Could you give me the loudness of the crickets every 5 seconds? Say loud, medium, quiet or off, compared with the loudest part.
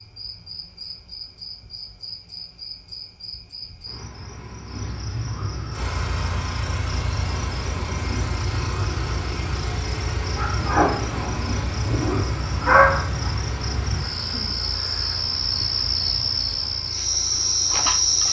quiet, medium, medium, loud.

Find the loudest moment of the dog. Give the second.
13 s.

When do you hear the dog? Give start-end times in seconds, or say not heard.
10.3-13.3.